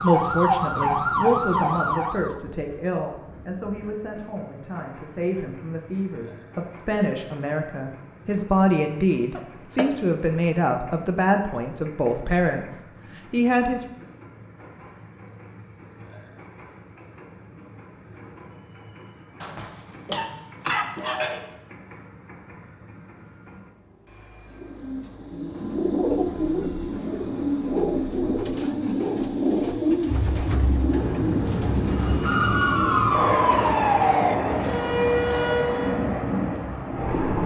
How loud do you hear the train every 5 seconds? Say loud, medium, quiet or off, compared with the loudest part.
quiet, quiet, quiet, quiet, quiet, quiet, loud, loud.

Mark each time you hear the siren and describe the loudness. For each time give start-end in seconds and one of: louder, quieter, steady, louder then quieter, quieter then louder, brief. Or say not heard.
0.0-2.4 brief
31.9-36.1 quieter then louder.